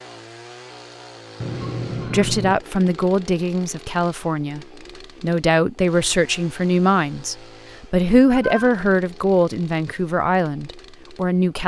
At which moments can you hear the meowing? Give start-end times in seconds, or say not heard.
1.4-2.5, 8.3-8.9.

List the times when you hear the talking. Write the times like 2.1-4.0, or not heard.
2.0-11.6.